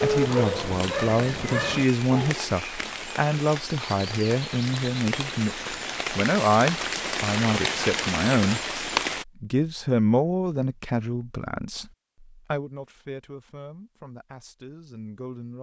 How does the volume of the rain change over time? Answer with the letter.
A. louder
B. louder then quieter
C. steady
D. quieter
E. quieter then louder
A.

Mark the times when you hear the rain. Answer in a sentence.
The rain can be heard from 0.0 to 9.2 s.